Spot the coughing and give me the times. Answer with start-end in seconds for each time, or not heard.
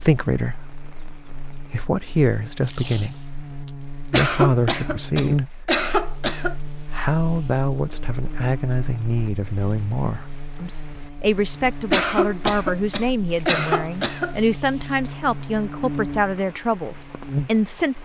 4.1-6.5, 11.9-14.3.